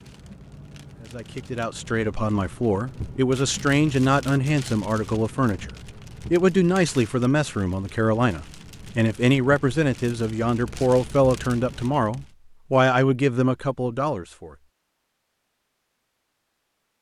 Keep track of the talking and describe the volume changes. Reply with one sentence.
The loudness of the talking stays about the same.